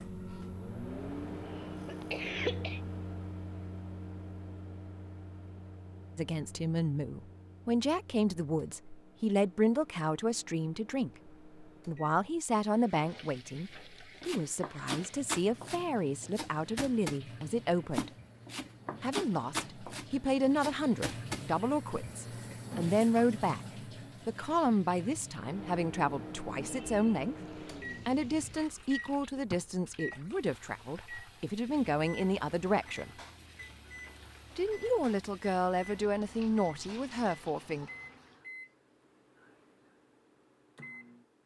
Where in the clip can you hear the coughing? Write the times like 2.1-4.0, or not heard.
1.4-2.8.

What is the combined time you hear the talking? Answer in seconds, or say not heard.
28 s.